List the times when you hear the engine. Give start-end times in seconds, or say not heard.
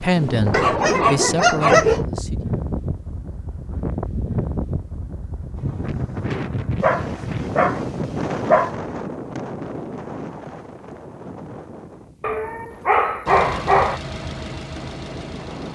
13.2-15.7.